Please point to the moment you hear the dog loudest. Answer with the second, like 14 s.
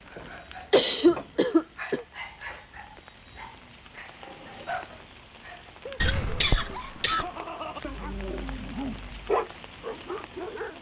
9 s.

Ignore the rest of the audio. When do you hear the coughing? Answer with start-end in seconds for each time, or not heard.
0.7-2.0, 6.0-7.2.